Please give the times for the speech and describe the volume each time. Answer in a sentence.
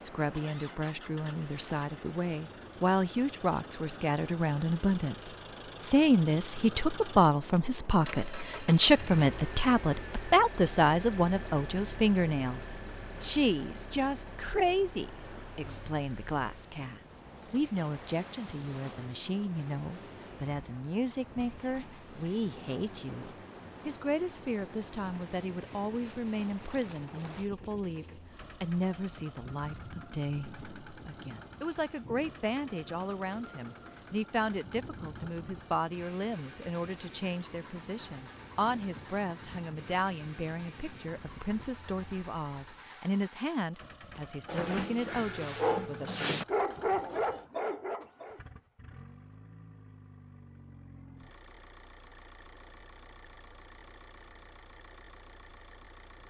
The speech can be heard from 0.0 to 46.2 s, getting quieter.